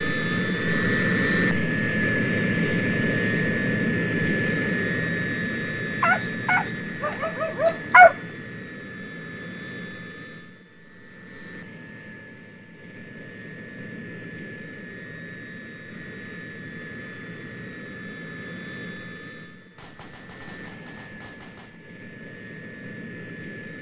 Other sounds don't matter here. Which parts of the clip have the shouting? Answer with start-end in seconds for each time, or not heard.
not heard.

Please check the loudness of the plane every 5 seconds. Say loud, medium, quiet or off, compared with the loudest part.
loud, medium, quiet, quiet, quiet.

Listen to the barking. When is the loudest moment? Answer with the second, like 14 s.
8 s.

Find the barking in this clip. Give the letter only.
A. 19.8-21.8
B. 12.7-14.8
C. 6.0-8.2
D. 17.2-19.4
C.